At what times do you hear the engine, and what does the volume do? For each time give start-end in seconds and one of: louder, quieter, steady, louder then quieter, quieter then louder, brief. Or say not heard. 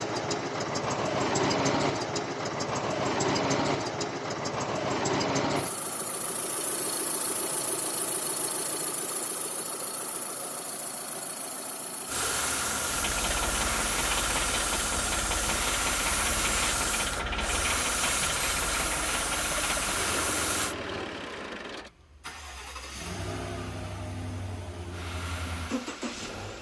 0.0-26.5 quieter.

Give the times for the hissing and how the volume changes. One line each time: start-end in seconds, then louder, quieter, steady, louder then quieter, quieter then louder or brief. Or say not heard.
12.1-20.8 steady
24.9-26.5 brief.